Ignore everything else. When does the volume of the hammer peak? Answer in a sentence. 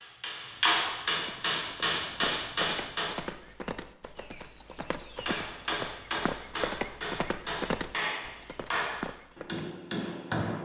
The volume of the hammer peaks at 1 second.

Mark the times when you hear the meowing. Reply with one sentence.
You can't hear the meowing here.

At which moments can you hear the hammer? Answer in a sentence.
The hammer can be heard from 0.0 to 3.1 s and from 5.2 to 10.6 s.